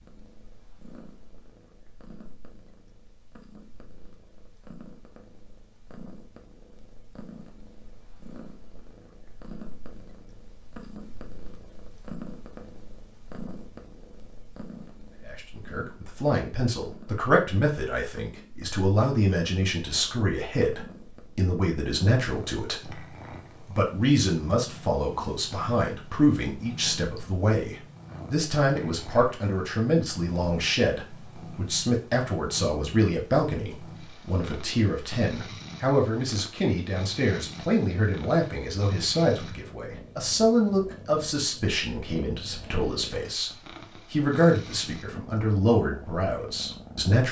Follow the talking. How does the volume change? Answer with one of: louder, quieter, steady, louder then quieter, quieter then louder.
steady.